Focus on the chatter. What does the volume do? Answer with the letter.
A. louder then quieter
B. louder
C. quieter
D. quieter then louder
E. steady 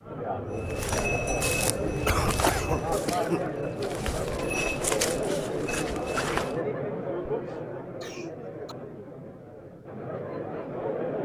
C.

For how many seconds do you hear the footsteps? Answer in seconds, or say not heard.
6 s.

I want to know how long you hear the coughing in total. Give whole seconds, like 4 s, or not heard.
3 s.